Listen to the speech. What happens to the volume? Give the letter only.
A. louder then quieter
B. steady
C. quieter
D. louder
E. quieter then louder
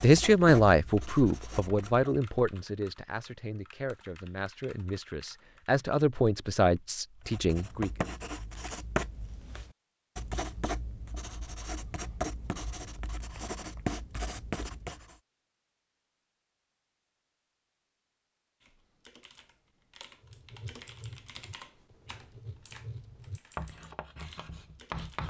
E.